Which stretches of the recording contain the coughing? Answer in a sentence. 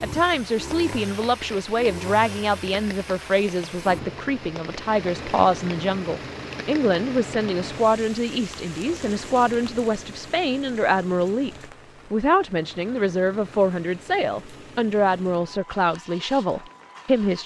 You can't hear the coughing here.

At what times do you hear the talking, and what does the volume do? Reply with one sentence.
You can hear the talking from 0.0 to 17.4 s, at a steady volume.